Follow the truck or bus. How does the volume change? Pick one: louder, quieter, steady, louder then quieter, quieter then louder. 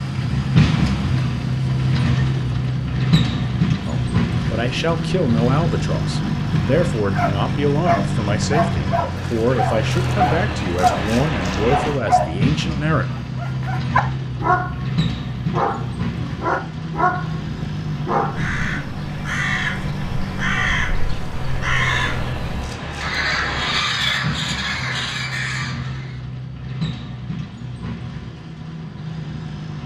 quieter.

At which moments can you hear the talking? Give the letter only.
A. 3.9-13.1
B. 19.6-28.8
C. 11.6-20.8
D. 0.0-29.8
A.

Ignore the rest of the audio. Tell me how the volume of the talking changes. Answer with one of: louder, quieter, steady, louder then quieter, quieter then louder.
steady.